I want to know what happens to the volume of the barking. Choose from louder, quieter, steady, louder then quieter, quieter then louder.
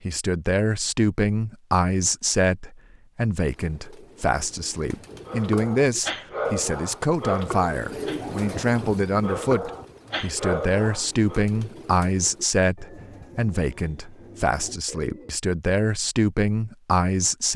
quieter then louder.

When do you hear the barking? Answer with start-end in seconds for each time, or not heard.
5.2-11.4.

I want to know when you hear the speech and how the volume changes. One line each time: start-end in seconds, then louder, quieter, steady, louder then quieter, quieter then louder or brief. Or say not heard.
0.0-17.5 steady.